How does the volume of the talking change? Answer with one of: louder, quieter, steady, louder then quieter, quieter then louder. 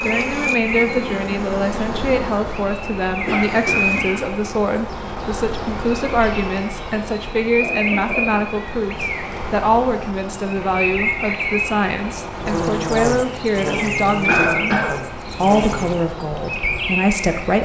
steady.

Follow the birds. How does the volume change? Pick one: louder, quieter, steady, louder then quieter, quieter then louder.
steady.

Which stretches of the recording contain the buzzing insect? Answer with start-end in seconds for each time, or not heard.
0.0-4.2, 12.3-16.1.